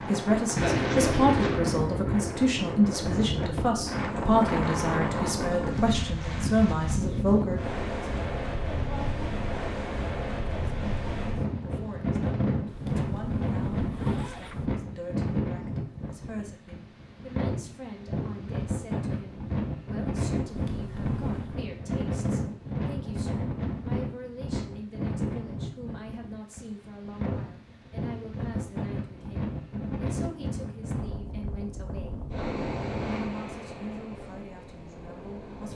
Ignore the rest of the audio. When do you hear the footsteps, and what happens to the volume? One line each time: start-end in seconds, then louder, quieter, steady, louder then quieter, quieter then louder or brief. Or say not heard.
not heard.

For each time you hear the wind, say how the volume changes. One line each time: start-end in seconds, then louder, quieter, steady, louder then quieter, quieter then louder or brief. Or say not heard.
0.0-35.7 quieter.